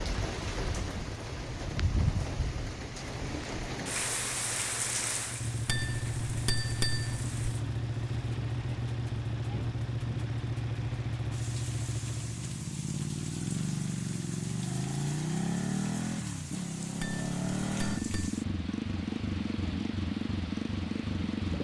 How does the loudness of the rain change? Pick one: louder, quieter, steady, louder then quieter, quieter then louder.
quieter.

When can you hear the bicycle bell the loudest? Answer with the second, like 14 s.
7 s.